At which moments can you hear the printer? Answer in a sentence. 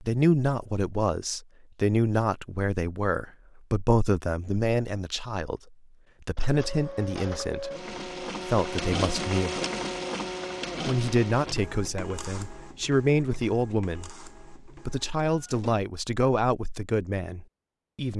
You can hear the printer from 6.3 to 15.8 s.